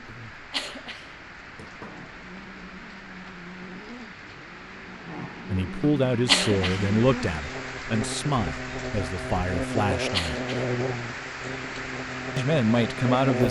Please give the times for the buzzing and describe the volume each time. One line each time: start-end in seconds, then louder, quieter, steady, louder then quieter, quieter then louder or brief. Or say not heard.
0.0-13.4 louder.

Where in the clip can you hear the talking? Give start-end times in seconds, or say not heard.
5.5-10.4, 12.3-13.4.